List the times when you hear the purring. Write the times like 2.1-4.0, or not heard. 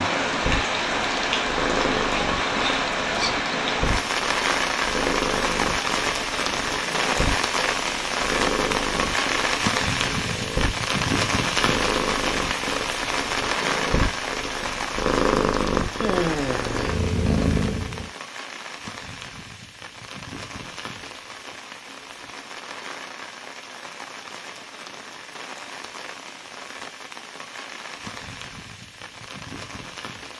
0.0-18.1.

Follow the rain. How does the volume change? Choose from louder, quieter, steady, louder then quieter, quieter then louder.
quieter.